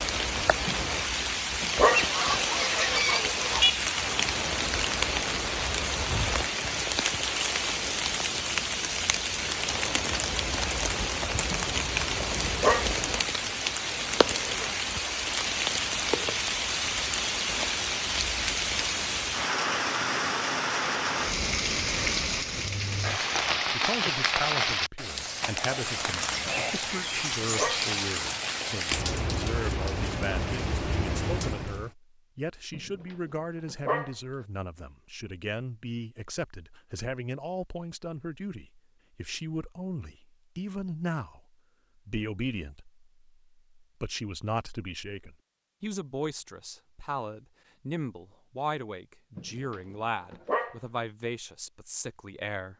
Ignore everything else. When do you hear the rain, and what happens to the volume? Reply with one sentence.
The rain can be heard from 0.0 to 31.9 s, at a steady volume.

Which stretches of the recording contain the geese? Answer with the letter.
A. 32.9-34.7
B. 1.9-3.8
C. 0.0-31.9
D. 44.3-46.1
B.